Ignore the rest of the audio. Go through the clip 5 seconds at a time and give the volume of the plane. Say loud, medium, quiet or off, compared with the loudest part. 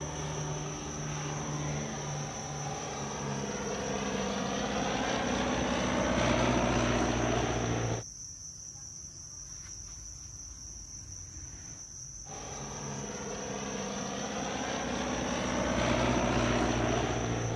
medium, loud, medium, loud.